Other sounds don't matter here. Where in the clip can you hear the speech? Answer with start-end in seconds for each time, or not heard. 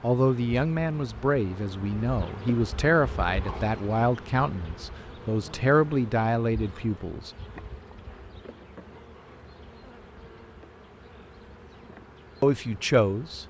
0.0-7.3, 12.4-13.4.